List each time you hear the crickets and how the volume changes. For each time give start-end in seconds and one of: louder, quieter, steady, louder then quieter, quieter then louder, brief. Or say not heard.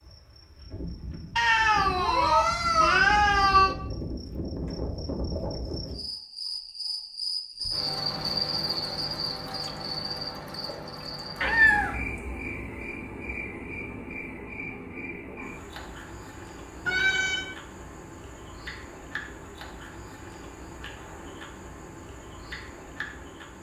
0.0-23.5 louder then quieter.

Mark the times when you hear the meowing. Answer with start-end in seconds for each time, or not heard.
1.4-3.8, 11.4-11.9, 16.9-17.5.